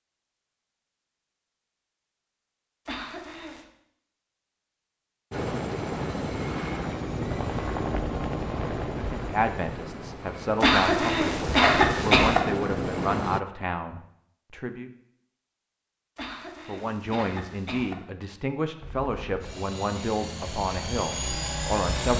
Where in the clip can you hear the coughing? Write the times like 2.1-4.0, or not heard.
2.9-3.6, 10.6-12.4, 16.1-17.9.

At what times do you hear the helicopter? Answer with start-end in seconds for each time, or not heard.
5.3-13.4, 18.8-22.1.